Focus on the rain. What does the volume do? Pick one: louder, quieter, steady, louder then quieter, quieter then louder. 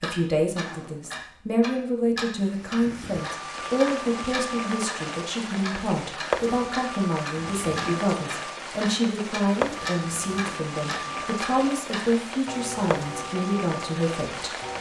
steady.